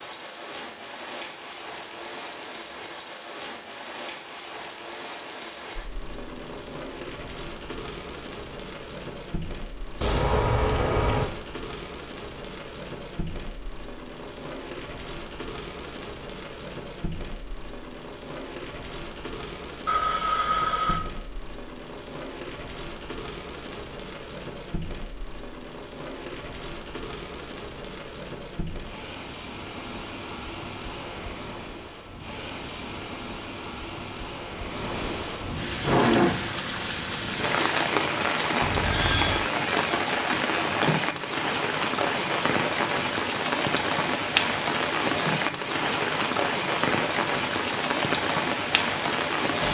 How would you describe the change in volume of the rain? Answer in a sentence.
The volume of the rain goes up.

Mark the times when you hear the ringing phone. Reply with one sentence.
You can hear the ringing phone from 10.0 to 11.3 s, from 19.9 to 21.0 s and from 38.6 to 39.5 s.